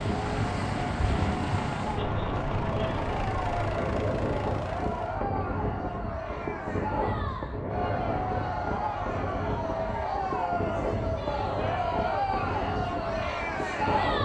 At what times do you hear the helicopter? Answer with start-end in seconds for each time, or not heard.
0.0-5.2.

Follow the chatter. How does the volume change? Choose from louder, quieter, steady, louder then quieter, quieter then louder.
louder.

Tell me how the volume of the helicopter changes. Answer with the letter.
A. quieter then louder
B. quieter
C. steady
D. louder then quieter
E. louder
C.